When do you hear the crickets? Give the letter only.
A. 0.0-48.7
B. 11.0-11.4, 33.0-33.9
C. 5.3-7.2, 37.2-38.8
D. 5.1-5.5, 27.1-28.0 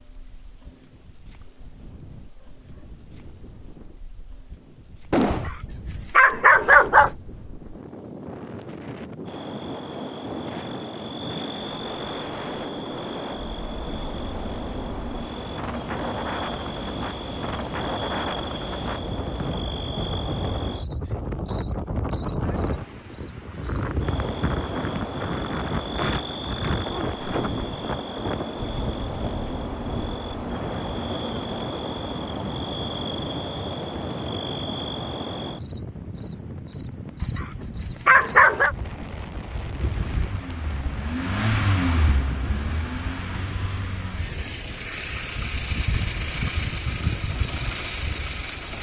A.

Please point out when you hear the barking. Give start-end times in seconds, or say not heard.
5.3-7.2, 37.2-38.8.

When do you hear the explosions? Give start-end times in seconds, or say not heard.
5.1-5.5, 27.1-28.0.